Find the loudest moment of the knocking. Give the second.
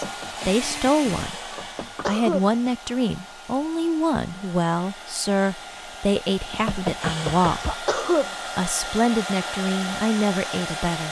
7 s.